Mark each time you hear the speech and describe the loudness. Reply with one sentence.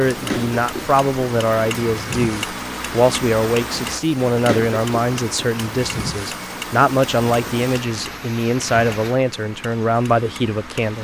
You can hear the speech from 0.0 to 10.9 s, at a steady volume.